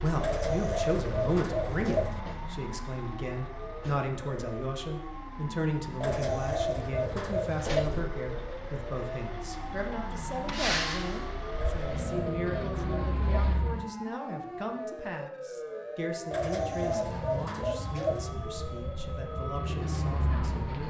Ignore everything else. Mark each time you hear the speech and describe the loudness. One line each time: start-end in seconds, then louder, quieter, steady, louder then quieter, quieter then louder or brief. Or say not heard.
0.0-20.8 quieter.